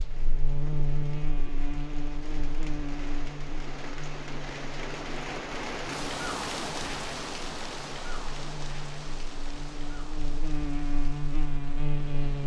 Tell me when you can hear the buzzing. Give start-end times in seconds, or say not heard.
0.0-12.4.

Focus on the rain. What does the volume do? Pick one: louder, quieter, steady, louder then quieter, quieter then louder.
louder then quieter.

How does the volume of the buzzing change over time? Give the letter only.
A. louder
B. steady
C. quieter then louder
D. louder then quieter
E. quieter
C.